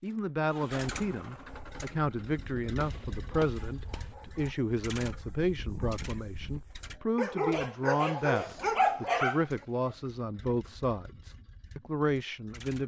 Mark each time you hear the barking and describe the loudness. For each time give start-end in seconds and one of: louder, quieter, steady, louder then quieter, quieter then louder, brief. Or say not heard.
1.4-9.9 louder.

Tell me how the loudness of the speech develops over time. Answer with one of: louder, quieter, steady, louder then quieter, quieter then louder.
steady.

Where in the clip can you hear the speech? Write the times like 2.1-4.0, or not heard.
0.0-12.8.